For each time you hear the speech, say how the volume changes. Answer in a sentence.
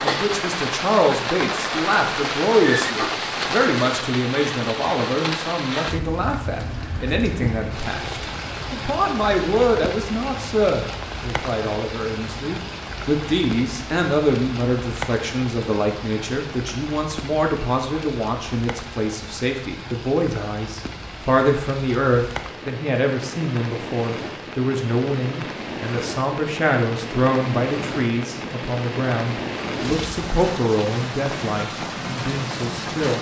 You can hear the speech from 0.0 to 33.1 s, at a steady volume.